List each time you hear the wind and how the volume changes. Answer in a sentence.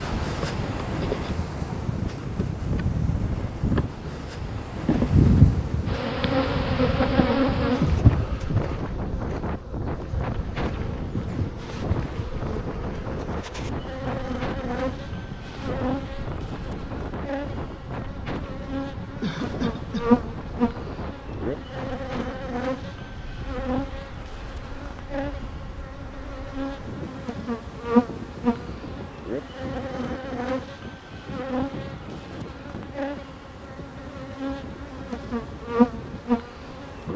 You can hear the wind from 0.0 to 37.1 s, getting quieter.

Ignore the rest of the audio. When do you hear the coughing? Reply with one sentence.
The coughing can be heard from 19.1 to 20.1 s.